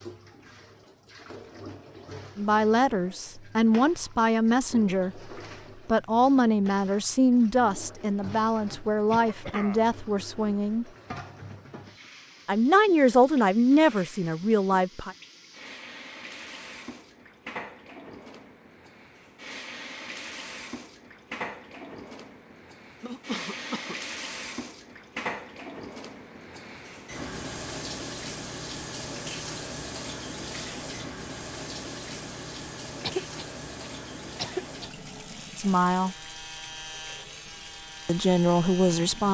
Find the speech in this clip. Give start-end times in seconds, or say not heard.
2.4-10.8, 12.4-15.2, 35.5-36.1, 38.0-39.2.